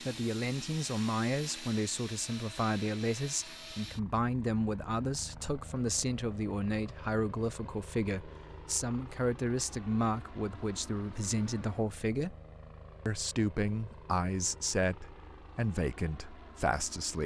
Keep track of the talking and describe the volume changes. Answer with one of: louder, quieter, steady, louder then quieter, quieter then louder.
steady.